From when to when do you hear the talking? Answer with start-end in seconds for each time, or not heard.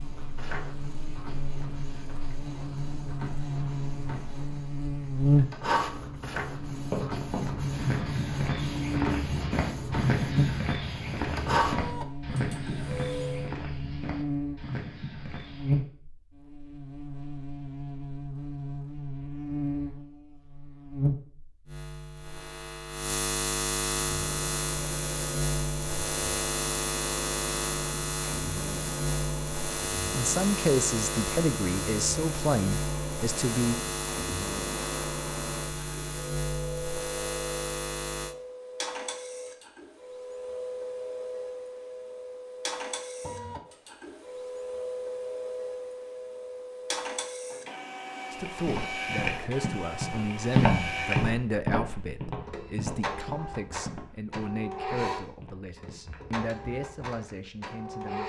30.1-33.8, 48.3-58.2.